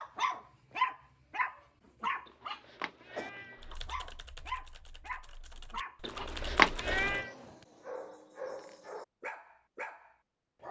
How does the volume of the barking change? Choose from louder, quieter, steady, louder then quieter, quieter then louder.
quieter.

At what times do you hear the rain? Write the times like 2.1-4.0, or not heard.
not heard.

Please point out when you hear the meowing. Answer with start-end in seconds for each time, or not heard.
2.2-3.8, 6.0-7.3.